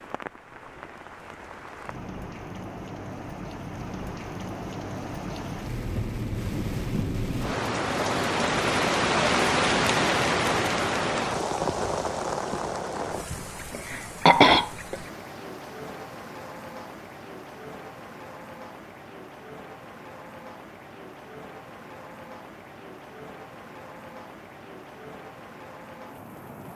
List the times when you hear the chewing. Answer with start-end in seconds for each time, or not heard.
not heard.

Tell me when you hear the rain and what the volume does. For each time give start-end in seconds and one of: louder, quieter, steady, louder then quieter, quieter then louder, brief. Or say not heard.
0.0-26.7 louder then quieter.